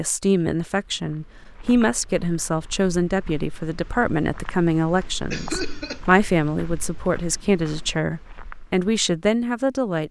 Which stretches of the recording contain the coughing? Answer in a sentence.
The coughing can be heard from 5.3 to 6.0 s.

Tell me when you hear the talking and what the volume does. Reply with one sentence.
You can hear the talking from 0.0 to 10.0 s, at a steady volume.